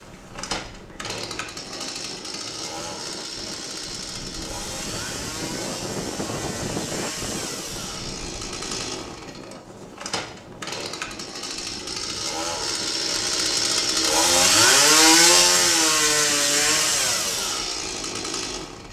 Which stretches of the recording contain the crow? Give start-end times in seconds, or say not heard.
not heard.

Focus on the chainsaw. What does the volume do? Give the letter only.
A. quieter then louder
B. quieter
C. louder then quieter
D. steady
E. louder
E.